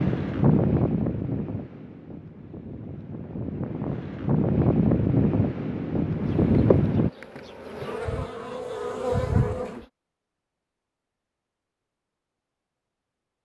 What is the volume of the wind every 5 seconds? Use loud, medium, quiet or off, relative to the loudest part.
loud, loud, off.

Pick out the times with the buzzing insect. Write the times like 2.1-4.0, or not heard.
6.2-9.8.